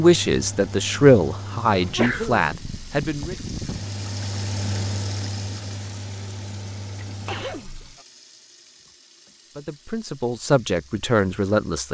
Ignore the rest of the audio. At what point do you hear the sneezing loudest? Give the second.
2 s.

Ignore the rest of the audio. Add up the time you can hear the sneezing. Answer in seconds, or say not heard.
2 s.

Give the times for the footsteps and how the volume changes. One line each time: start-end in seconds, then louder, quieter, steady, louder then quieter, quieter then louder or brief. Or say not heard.
not heard.